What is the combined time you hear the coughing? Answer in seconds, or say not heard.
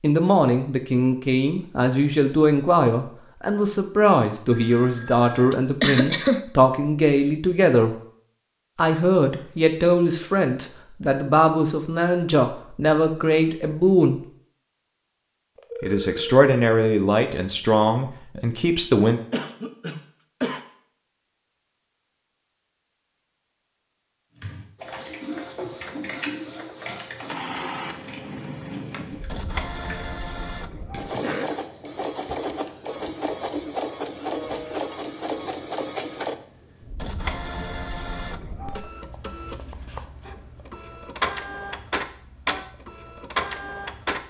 3 s.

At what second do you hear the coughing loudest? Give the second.
6 s.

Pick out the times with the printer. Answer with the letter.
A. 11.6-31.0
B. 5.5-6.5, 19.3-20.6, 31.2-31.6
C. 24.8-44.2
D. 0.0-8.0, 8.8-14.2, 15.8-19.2
C.